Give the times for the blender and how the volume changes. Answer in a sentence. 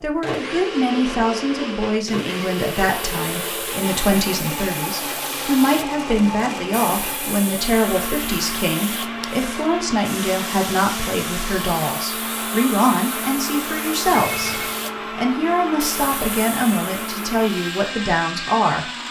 You can hear the blender from 0.0 to 19.0 s, at a steady volume.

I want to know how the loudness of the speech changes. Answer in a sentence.
The volume of the speech stays about the same.